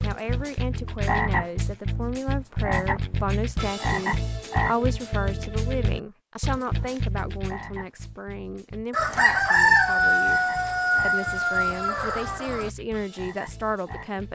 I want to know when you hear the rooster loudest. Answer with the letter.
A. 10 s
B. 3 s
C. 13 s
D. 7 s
A.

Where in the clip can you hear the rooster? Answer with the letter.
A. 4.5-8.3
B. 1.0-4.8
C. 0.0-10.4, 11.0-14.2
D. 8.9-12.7
D.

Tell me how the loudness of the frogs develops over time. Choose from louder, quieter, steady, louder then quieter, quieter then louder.
quieter.